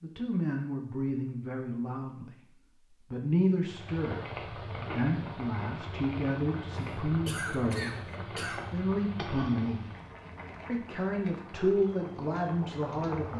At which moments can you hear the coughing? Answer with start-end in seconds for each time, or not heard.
6.8-8.7.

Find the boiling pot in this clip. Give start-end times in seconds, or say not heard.
3.6-13.3.